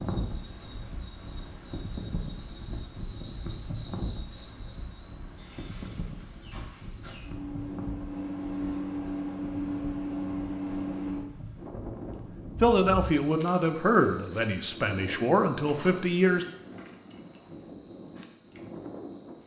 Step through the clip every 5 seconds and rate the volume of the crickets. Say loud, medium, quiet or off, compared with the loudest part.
loud, loud, loud, medium.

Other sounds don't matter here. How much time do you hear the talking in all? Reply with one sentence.
You can hear the talking for 4 seconds altogether.